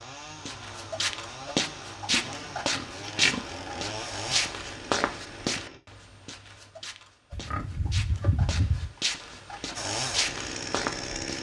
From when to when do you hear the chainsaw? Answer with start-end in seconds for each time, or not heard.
0.0-5.8, 9.8-11.3.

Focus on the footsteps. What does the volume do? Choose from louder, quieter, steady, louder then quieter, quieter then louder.
quieter then louder.